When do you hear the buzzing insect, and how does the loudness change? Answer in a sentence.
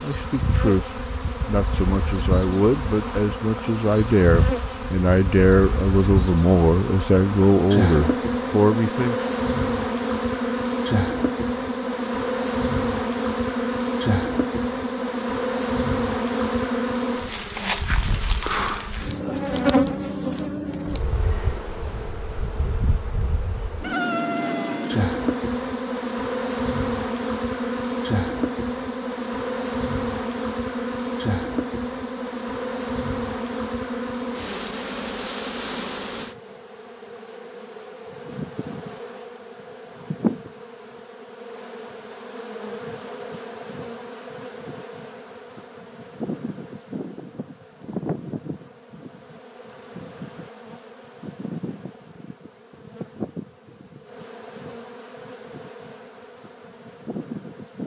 You can hear the buzzing insect from 0.0 to 57.8 s, getting quieter.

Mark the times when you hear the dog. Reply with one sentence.
You can't hear the dog here.